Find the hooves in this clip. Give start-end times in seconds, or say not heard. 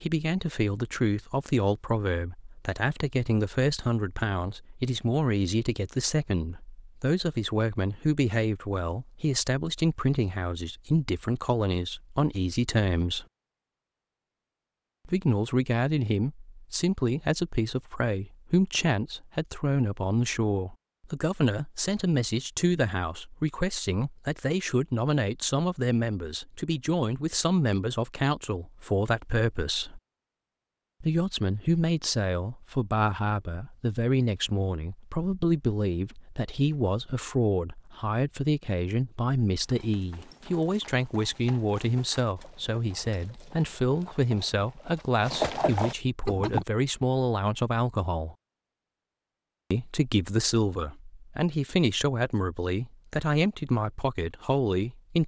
39.6-46.6.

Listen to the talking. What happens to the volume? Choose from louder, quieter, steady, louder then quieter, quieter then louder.
steady.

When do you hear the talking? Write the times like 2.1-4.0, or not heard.
0.0-13.2, 15.1-30.0, 31.0-48.4, 49.7-55.2.